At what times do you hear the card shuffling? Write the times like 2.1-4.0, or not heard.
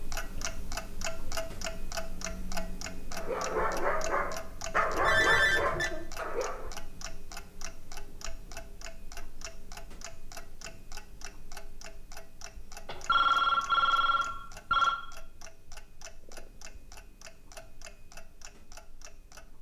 not heard.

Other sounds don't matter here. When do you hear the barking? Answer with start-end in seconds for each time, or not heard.
3.1-6.7.